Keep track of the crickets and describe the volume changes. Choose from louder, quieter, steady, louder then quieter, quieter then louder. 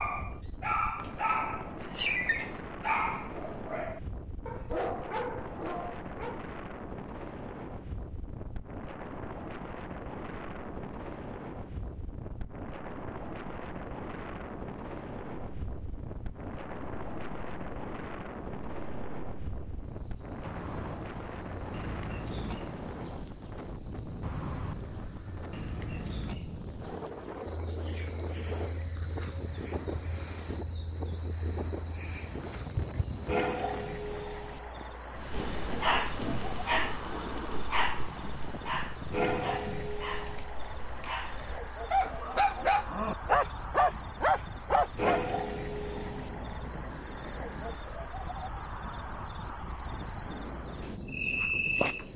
louder.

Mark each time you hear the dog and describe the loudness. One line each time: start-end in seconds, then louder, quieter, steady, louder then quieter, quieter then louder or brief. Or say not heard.
0.0-6.5 quieter
35.1-45.2 quieter then louder.